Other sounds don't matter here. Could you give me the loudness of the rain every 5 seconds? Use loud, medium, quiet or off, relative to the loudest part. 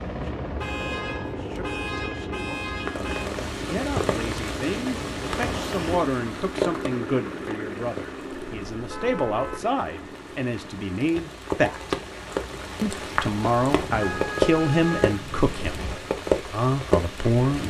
loud, medium, loud, loud.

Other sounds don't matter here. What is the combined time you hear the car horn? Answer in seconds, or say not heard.
6 s.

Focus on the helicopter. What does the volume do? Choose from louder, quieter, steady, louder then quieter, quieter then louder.
quieter.